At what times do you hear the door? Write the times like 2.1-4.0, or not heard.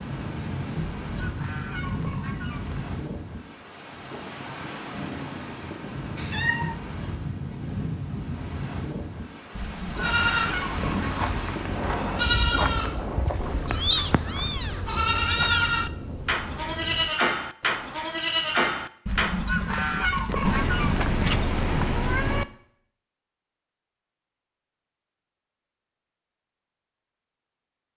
not heard.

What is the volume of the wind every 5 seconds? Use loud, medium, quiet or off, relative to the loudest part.
loud, loud, loud, medium, off, off.